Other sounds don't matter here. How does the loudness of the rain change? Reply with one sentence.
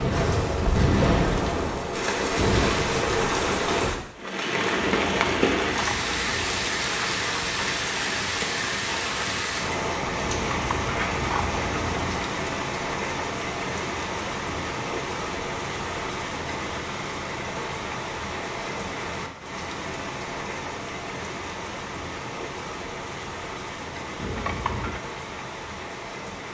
The volume of the rain goes down.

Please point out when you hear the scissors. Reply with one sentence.
The scissors can be heard from 4.9 to 6.7 s, from 10.2 to 12.2 s and from 24.1 to 25.0 s.